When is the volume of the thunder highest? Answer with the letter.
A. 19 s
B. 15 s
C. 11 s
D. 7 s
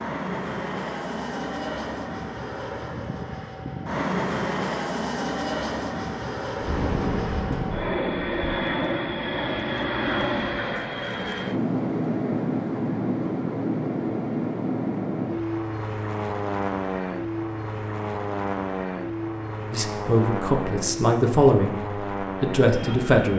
D.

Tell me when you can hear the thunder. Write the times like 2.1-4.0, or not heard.
6.6-8.6.